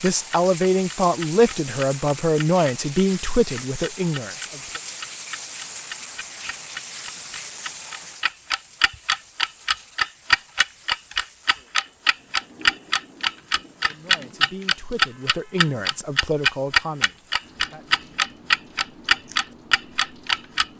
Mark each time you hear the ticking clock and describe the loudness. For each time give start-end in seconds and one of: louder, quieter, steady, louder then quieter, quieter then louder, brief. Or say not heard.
0.0-20.6 louder.